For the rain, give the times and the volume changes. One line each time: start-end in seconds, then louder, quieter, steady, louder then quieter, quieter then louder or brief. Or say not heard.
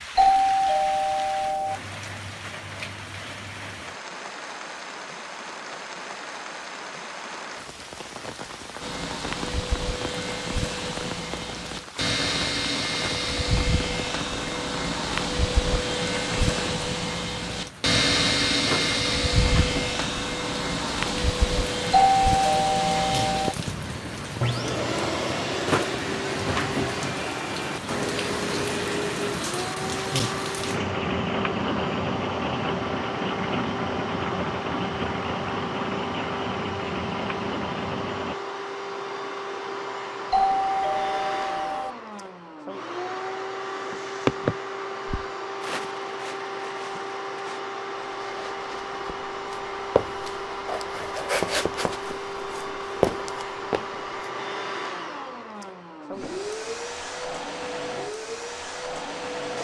0.0-38.4 louder.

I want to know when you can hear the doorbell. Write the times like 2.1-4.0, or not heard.
0.1-1.8, 21.9-23.6, 40.3-42.0.